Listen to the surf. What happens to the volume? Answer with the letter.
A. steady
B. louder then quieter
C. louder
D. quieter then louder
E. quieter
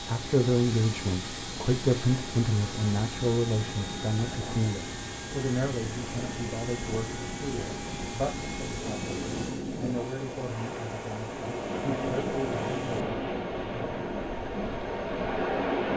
C.